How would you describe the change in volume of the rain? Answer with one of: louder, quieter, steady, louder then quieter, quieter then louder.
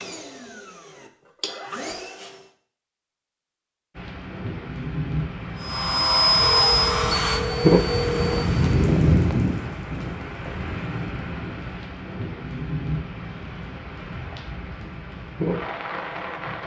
louder then quieter.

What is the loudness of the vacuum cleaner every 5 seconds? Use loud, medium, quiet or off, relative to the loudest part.
quiet, loud, off, off.